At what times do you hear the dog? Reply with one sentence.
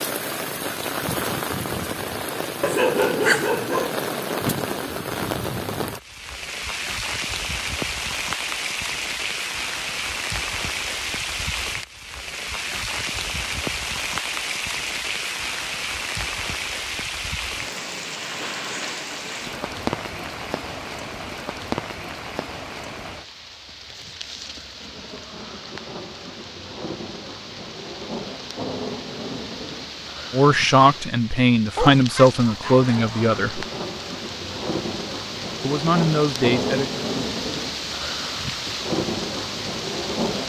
The dog can be heard from 2.6 to 4.0 s and from 31.8 to 33.2 s.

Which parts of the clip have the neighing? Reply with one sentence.
The neighing can't be heard in this clip.